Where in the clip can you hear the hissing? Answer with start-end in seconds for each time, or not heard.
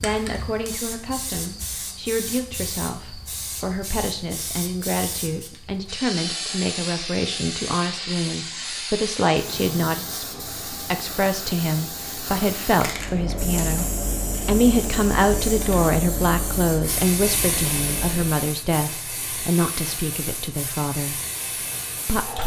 0.0-22.4.